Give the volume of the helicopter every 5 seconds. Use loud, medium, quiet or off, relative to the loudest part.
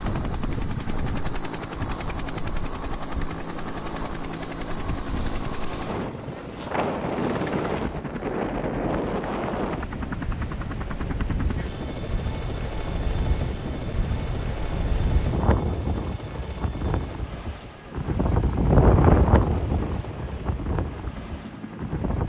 loud, loud, loud, medium, medium.